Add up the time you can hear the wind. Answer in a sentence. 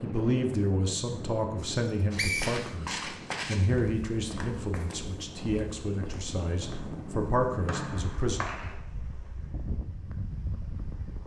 The wind can be heard for 11 seconds in total.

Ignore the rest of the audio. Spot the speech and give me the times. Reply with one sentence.
The speech can be heard from 0.0 to 8.4 s.